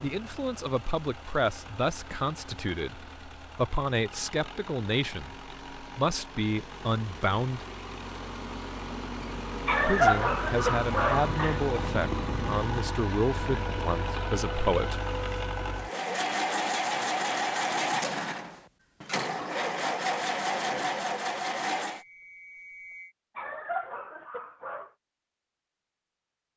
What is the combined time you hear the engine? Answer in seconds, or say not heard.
22 s.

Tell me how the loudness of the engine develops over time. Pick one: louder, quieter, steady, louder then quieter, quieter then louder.
louder.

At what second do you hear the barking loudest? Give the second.
10 s.